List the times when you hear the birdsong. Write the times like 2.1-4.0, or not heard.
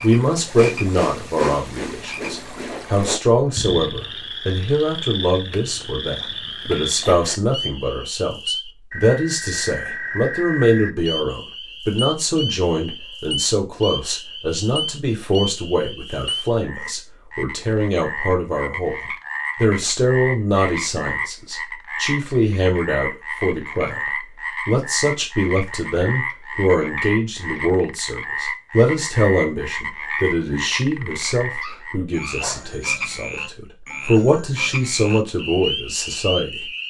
not heard.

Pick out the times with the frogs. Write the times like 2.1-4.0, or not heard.
0.0-36.8.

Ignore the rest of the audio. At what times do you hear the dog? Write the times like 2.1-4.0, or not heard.
31.6-32.9.